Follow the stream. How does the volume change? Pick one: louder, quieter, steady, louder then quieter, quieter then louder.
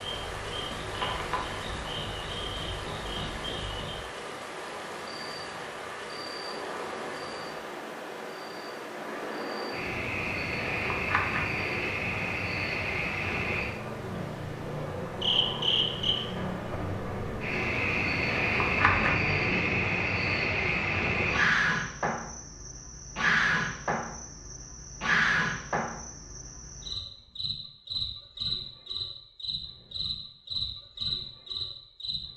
quieter.